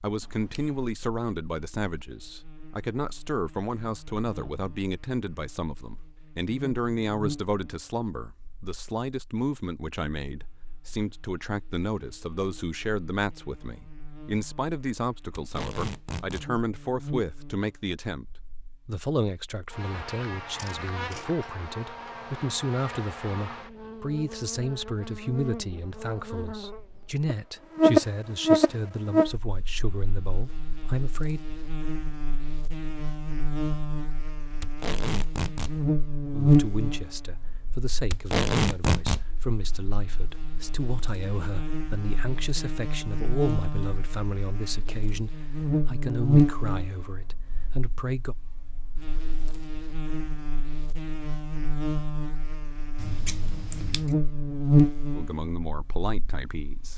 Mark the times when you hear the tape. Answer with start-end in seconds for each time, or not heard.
15.3-16.4, 34.6-35.8, 38.1-39.2.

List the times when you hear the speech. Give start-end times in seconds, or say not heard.
0.0-18.2, 18.9-31.4, 36.3-48.4, 55.1-56.9.